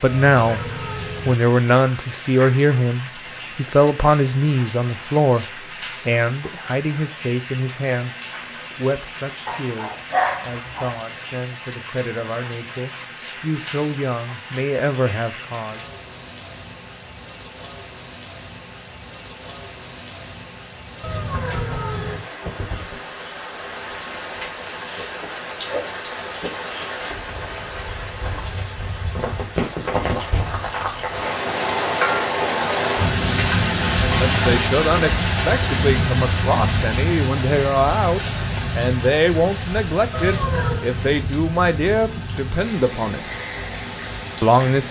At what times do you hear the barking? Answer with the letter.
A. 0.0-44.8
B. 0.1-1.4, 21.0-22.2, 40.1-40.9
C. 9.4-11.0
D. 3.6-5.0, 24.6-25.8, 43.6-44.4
C.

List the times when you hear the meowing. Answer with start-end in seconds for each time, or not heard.
0.1-1.4, 21.0-22.2, 40.1-40.9.